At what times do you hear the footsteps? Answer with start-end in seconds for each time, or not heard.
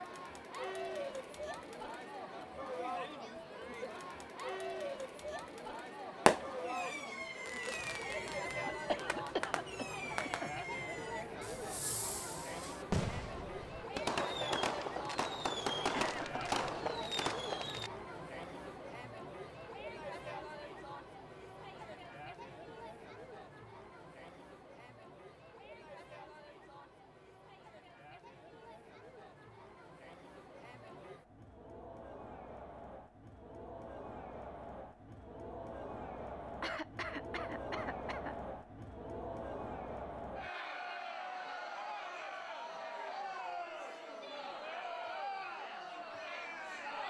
not heard.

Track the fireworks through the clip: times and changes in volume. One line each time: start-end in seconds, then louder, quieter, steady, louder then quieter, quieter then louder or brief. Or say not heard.
6.2-17.9 louder.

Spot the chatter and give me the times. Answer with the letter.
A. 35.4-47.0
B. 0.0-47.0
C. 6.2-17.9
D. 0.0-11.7
B.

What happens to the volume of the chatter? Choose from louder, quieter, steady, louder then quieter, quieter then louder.
quieter then louder.